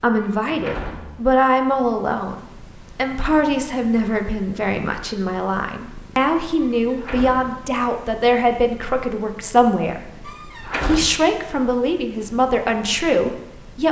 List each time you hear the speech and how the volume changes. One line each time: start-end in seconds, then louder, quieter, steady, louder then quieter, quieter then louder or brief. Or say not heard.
0.0-13.8 steady.